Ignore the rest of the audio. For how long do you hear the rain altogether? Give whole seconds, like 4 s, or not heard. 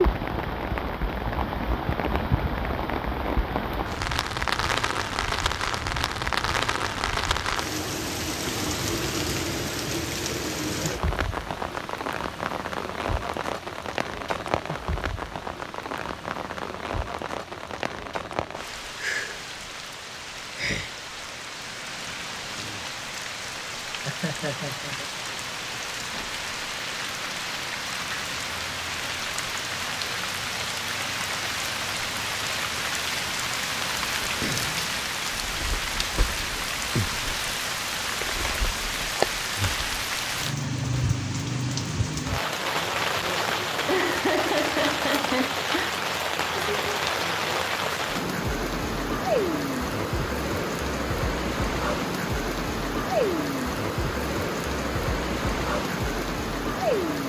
57 s.